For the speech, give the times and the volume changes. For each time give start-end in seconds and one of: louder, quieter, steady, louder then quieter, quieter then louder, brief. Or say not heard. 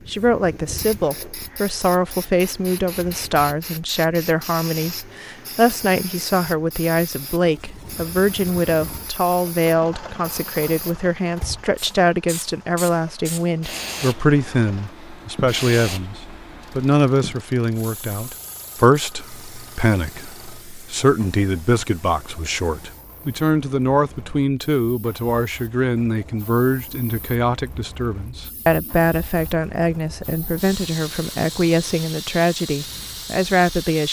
0.1-34.0 steady.